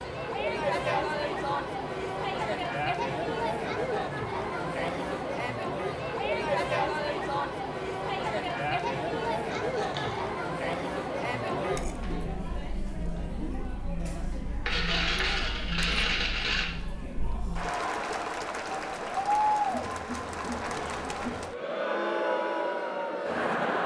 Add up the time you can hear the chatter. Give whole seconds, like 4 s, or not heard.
24 s.